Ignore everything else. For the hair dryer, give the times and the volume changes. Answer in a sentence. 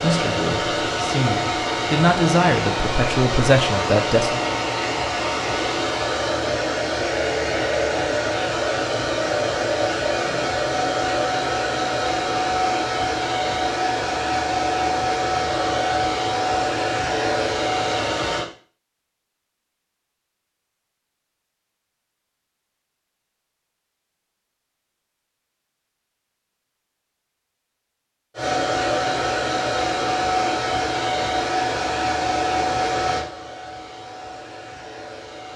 You can hear the hair dryer from 0.0 to 18.4 s, at a steady volume; and from 28.4 to 35.5 s, getting quieter.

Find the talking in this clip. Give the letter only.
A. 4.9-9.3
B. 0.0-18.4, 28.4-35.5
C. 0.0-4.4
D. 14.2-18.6
C.